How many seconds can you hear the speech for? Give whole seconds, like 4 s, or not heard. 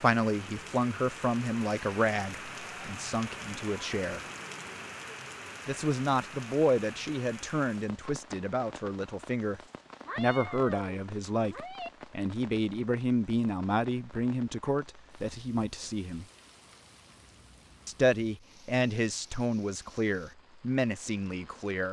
19 s.